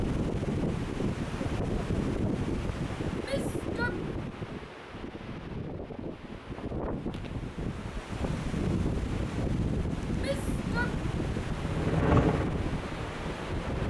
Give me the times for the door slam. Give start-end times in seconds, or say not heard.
not heard.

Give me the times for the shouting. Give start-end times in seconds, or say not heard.
3.2-4.0, 10.2-11.0.